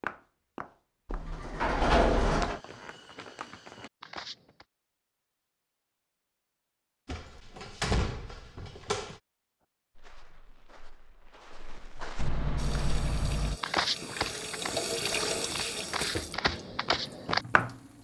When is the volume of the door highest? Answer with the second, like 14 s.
2 s.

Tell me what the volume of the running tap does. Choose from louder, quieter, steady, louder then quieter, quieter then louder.
louder then quieter.